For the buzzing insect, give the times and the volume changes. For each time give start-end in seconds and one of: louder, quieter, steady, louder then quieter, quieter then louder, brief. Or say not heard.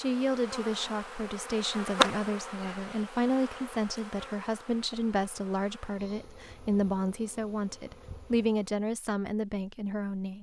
0.0-8.7 louder then quieter.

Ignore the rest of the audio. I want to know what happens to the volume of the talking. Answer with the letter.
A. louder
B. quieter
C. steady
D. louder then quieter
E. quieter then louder
C.